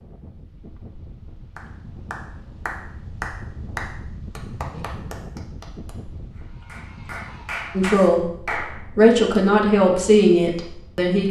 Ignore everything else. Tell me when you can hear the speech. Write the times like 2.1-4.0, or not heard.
7.8-11.2.